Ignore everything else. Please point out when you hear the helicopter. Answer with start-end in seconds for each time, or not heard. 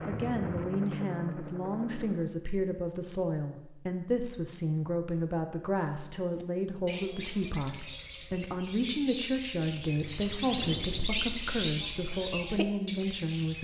0.0-2.3, 9.9-11.7.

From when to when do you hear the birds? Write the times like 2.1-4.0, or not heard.
6.4-13.5.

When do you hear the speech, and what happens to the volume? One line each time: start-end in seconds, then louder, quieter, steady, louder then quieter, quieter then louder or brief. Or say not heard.
0.1-13.5 steady.